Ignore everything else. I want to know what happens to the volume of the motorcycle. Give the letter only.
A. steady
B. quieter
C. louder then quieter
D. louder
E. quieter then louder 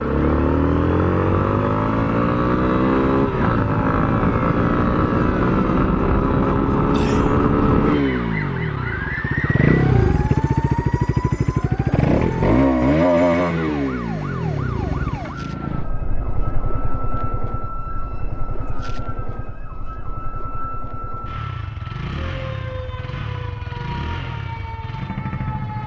B.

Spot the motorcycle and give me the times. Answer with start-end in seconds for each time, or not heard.
0.0-25.8.